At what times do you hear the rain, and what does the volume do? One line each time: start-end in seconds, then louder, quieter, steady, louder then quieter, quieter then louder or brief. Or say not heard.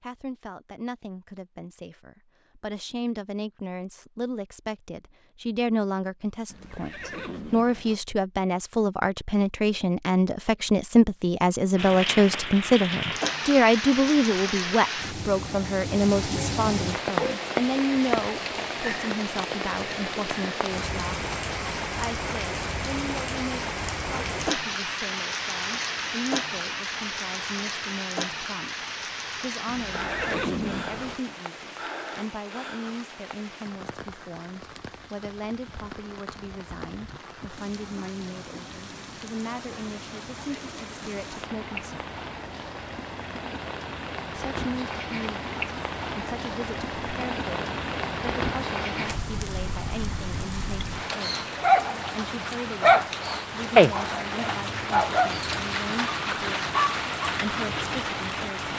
11.8-58.7 quieter then louder.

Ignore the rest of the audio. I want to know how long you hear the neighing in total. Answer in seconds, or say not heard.
3 s.